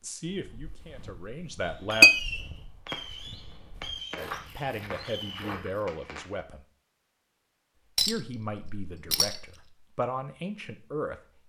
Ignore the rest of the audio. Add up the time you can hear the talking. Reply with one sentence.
You can hear the talking for 8 seconds altogether.